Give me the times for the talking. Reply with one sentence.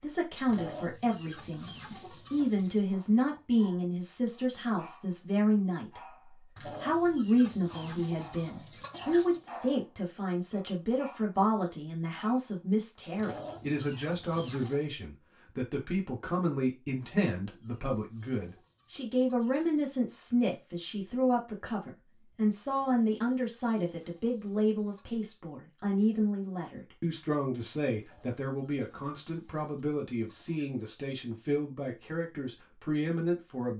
The talking can be heard from 0.0 to 33.7 s.